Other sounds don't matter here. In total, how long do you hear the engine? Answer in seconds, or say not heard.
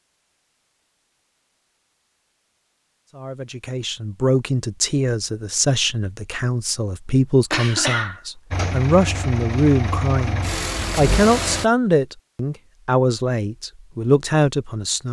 3 s.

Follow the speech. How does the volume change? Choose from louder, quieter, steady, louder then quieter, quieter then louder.
steady.